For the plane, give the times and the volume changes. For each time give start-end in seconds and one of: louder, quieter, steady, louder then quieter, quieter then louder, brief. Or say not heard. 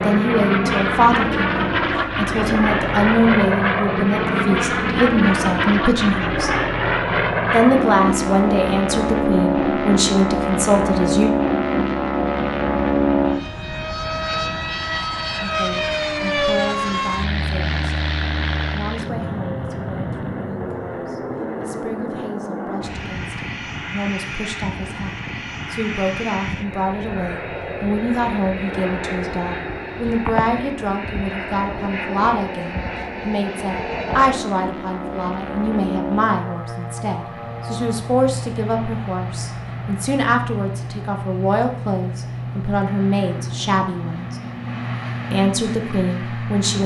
0.0-46.8 quieter.